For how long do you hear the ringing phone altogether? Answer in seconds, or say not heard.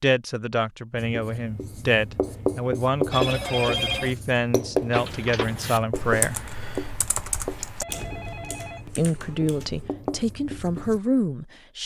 3 s.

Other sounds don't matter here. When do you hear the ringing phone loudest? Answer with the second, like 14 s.
4 s.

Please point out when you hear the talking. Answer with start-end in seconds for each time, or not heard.
0.0-6.3, 8.8-11.8.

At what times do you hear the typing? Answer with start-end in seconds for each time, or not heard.
4.9-9.9.